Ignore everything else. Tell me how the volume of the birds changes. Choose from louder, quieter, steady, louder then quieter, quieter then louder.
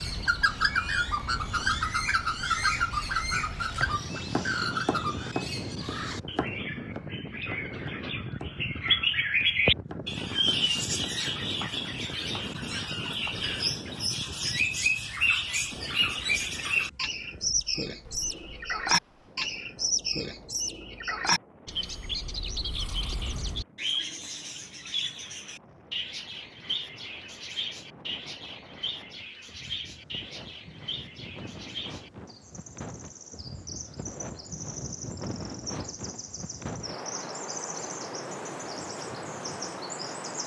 quieter.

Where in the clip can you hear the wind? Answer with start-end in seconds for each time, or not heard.
0.0-40.4.